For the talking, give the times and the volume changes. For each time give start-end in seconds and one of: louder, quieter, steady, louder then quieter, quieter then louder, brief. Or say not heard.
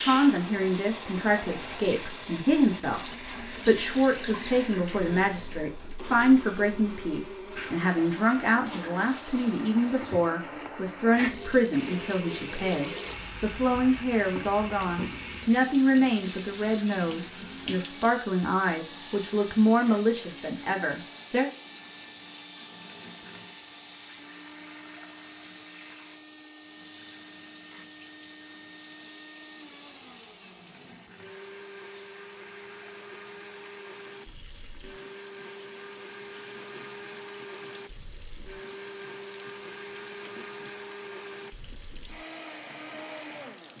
0.0-21.5 steady.